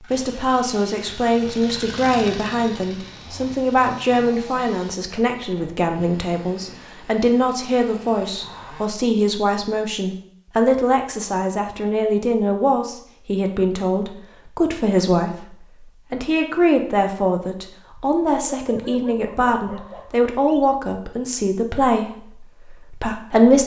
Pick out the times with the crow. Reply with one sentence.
The crow can't be heard in this clip.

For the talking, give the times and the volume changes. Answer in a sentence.
You can hear the talking from 0.0 to 23.6 s, at a steady volume.